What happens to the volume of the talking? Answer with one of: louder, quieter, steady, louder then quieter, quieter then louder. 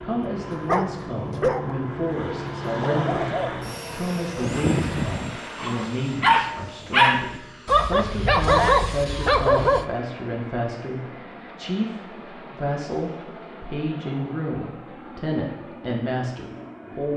steady.